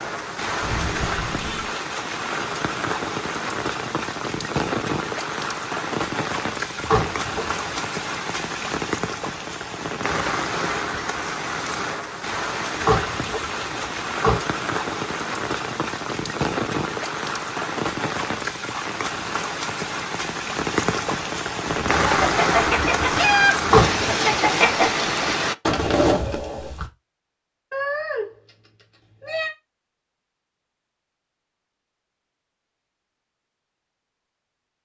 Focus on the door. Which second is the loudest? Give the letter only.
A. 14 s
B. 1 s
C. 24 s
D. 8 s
C.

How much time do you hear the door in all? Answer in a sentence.
You can hear the door for 3 seconds altogether.